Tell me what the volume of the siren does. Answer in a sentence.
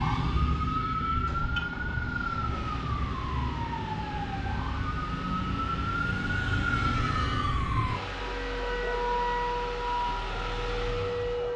The volume of the siren stays about the same.